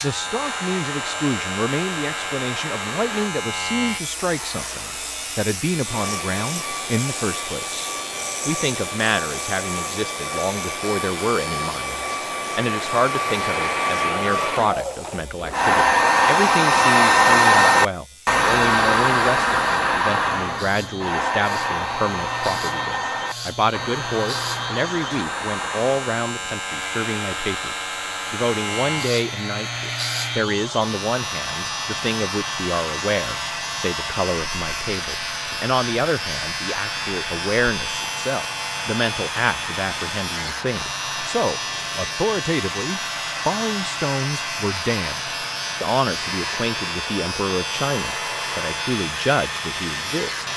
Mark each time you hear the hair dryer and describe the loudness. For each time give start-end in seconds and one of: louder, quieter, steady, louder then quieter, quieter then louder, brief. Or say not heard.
0.2-50.5 louder then quieter.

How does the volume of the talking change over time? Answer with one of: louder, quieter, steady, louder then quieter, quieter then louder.
steady.